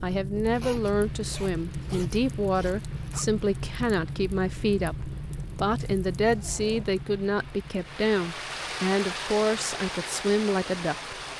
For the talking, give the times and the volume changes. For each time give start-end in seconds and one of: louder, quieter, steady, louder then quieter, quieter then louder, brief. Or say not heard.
0.0-11.2 steady.